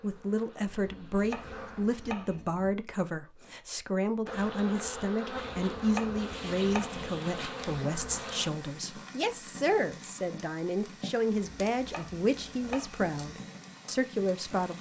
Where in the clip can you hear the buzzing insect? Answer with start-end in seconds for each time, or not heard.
0.0-2.2, 4.2-8.5.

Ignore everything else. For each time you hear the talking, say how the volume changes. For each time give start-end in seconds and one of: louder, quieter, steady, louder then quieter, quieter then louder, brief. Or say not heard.
0.0-14.7 steady.